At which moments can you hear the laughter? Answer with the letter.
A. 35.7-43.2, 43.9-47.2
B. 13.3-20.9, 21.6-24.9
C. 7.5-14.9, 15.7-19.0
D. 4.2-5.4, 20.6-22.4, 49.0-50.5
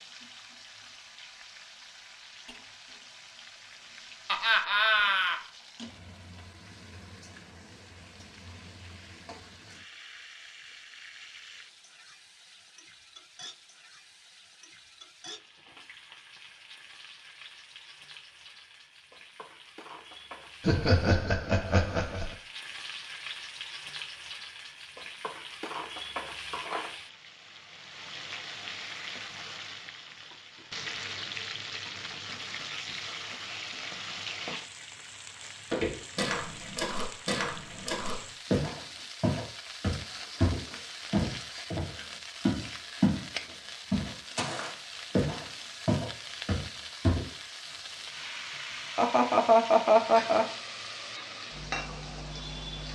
D.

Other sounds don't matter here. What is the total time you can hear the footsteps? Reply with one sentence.
The footsteps can be heard for 11 seconds in total.